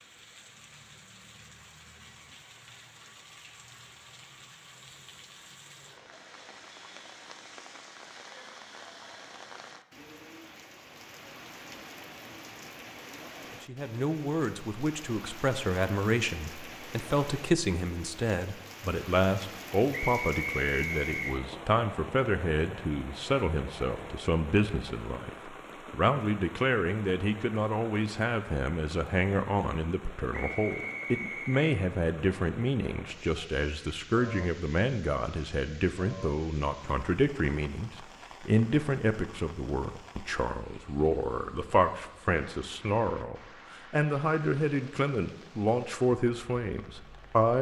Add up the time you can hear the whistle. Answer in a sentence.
You can hear the whistle for 3 seconds altogether.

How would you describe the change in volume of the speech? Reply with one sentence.
The volume of the speech stays about the same.